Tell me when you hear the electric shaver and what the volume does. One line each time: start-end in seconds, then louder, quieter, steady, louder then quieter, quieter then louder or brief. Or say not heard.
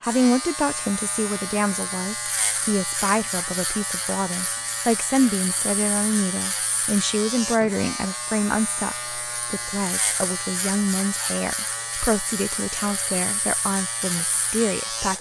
0.0-15.1 steady.